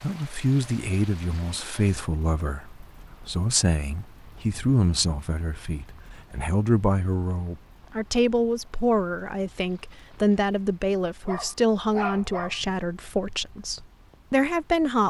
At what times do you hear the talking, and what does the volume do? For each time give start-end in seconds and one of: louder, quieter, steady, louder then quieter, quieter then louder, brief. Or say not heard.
0.0-15.0 steady.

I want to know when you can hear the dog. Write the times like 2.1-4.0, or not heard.
11.2-12.6.